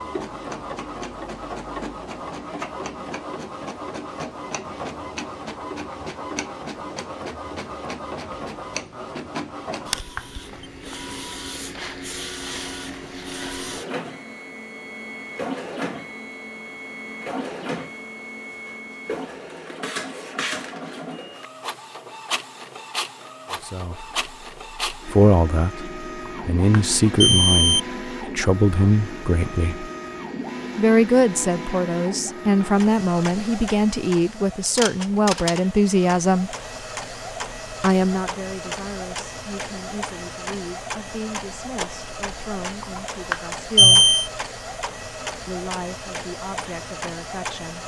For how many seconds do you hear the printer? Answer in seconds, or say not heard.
48 s.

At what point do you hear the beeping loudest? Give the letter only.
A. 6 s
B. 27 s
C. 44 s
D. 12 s
C.